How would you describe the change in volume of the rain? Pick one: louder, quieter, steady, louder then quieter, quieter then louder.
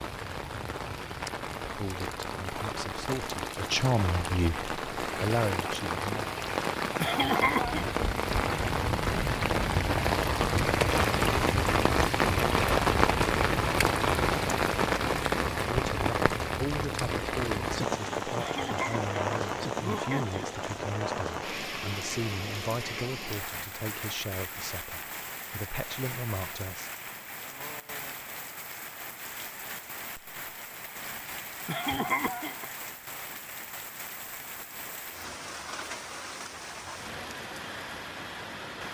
louder then quieter.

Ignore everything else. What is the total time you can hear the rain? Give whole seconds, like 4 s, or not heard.
39 s.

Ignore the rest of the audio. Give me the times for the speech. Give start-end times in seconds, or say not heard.
1.7-6.3, 15.7-26.9.